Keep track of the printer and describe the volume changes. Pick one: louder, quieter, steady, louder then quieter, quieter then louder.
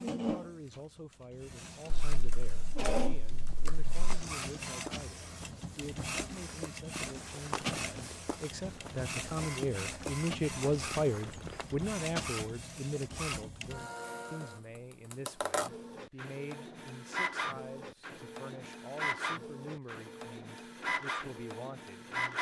steady.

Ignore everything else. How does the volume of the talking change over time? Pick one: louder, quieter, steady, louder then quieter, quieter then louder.
louder then quieter.